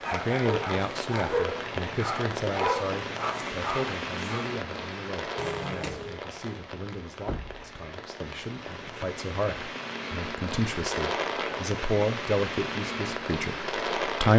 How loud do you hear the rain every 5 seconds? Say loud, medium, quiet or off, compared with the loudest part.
loud, medium, loud.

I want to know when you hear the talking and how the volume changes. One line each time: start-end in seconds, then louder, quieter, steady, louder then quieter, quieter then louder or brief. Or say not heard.
0.1-14.3 quieter then louder.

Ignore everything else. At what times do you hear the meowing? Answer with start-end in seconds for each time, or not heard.
5.3-6.2.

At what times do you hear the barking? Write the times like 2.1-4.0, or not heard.
0.0-4.6.